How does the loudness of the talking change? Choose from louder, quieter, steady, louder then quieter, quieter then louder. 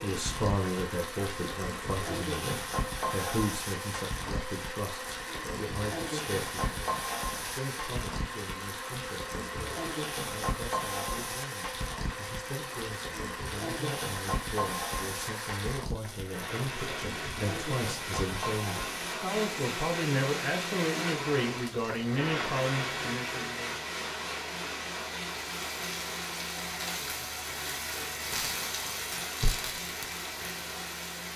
quieter then louder.